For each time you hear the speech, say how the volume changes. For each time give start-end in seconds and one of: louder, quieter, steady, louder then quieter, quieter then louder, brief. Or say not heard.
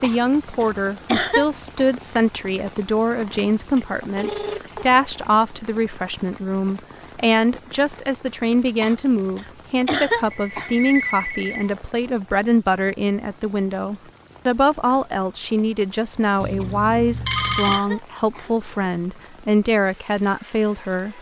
0.0-21.1 steady.